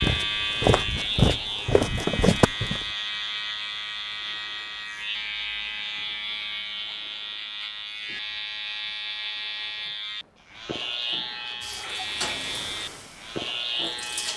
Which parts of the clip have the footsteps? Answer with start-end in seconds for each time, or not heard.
0.0-2.9.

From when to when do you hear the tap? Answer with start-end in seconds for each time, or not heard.
11.6-14.3.